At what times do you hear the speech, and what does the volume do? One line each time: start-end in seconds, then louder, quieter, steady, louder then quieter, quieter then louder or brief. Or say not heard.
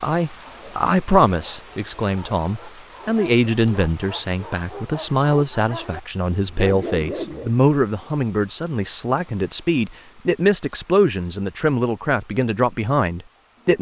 0.0-13.7 steady.